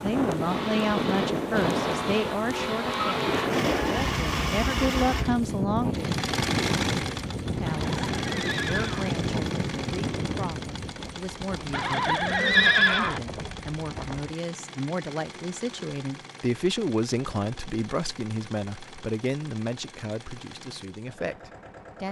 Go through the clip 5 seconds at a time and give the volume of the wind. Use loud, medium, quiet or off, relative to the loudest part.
loud, loud, medium, off, off.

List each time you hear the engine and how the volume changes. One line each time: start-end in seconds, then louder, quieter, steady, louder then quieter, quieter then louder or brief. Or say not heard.
0.0-22.0 quieter.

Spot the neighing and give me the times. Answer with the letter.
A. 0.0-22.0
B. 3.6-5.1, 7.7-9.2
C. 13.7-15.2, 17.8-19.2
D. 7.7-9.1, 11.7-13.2
D.